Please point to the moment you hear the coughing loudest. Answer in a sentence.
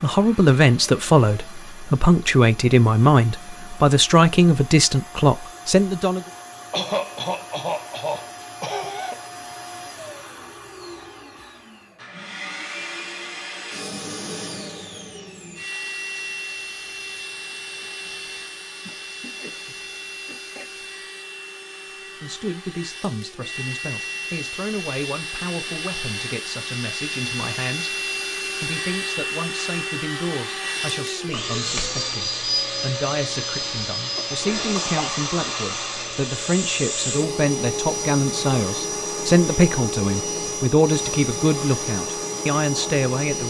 The volume of the coughing peaks at 7 seconds.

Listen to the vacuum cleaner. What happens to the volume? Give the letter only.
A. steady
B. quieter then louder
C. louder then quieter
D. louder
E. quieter
D.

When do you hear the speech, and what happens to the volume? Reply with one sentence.
The speech can be heard from 0.0 to 6.2 s, at a steady volume; and from 22.2 to 43.4 s, getting louder.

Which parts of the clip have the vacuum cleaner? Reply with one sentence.
You can hear the vacuum cleaner from 0.0 to 43.4 s.